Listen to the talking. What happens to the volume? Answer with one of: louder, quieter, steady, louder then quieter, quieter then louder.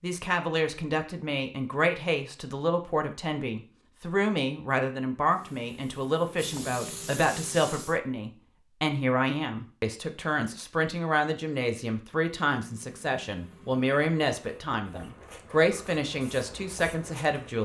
steady.